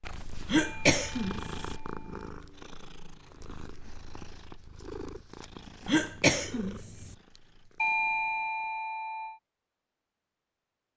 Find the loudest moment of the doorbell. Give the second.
8 s.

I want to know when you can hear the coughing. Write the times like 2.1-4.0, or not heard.
0.5-1.8, 5.8-7.2.